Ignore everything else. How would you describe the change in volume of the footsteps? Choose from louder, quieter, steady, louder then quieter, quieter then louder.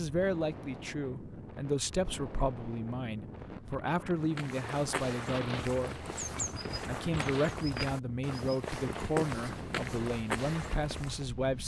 steady.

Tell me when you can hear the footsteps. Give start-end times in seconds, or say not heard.
4.2-11.3.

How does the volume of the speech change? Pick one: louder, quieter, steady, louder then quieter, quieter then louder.
steady.